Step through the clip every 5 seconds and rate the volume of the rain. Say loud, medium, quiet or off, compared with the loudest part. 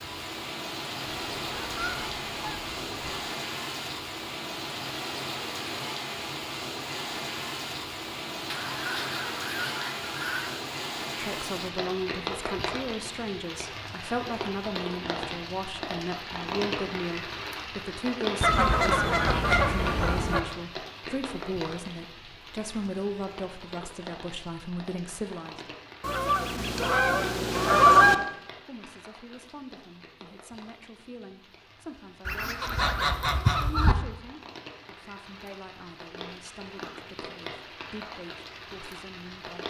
loud, loud, loud, loud, medium, quiet, quiet, medium.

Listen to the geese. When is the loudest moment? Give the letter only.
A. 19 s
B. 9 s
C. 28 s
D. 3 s
C.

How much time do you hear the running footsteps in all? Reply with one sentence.
You can't hear the running footsteps here.